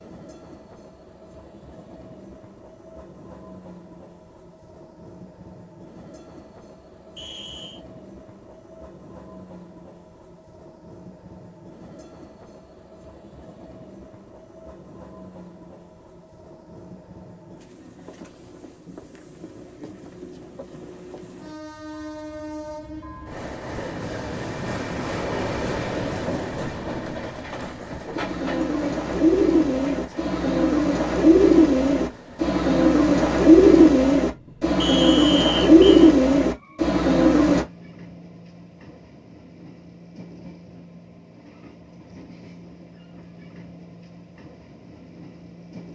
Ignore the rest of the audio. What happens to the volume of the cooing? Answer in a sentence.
The loudness of the cooing goes up.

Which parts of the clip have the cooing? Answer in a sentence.
You can hear the cooing from 28.1 to 37.6 s.